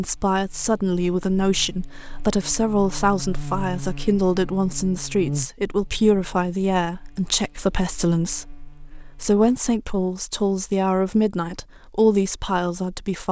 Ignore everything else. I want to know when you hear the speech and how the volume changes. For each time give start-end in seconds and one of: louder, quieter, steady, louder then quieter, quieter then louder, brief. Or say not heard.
0.0-13.2 steady.